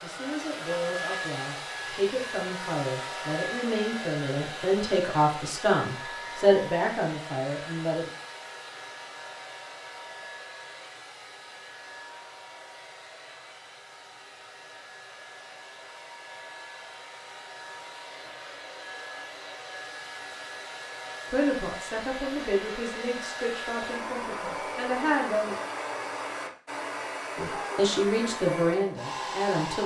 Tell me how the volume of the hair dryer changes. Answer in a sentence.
The volume of the hair dryer goes down, then up.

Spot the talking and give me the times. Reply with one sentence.
The talking can be heard from 0.0 to 8.1 s, from 21.3 to 25.6 s and from 27.4 to 29.8 s.